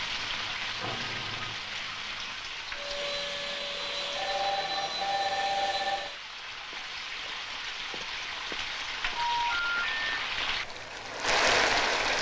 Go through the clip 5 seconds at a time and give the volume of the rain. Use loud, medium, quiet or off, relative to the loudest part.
medium, medium, loud.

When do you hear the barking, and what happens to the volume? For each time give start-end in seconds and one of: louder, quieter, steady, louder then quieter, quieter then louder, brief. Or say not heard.
not heard.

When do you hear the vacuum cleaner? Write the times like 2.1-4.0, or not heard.
2.7-6.2.